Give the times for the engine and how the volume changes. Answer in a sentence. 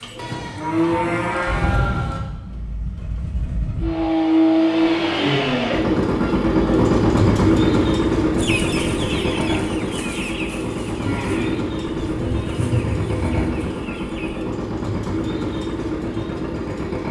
You can hear the engine from 0.0 to 17.0 s, getting louder then quieter.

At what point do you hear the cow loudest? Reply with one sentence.
The volume of the cow peaks at 1 second.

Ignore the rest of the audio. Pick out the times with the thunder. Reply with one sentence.
You can hear the thunder from 12.2 to 13.8 s.